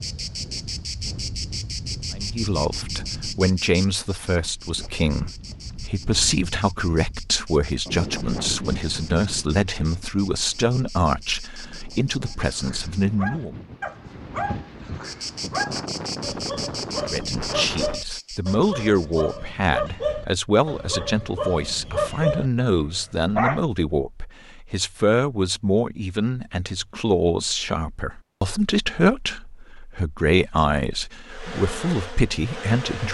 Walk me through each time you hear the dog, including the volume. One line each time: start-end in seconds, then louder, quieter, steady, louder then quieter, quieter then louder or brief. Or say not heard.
12.2-23.6 louder.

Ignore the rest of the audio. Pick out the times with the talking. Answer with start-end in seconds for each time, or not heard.
2.1-13.6, 17.1-33.1.